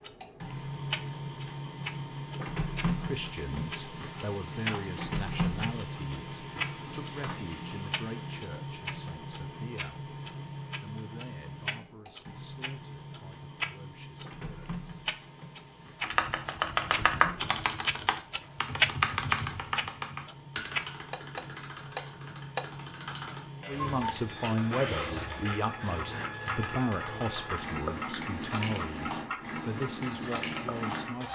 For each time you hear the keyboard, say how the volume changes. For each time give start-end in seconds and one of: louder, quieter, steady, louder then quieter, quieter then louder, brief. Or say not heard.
16.0-27.8 quieter.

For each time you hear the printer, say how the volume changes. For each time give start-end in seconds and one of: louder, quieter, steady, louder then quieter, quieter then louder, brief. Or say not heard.
0.0-31.2 quieter then louder.